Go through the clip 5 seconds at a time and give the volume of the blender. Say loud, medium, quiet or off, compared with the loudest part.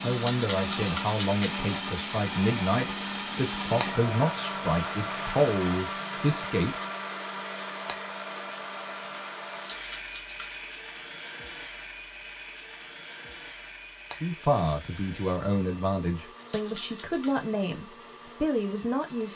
loud, loud, medium, quiet.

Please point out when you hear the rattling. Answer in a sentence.
You can hear the rattling from 0.1 to 1.6 s, from 9.5 to 10.6 s and from 16.4 to 17.5 s.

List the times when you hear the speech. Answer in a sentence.
The speech can be heard from 0.0 to 6.8 s and from 14.2 to 19.3 s.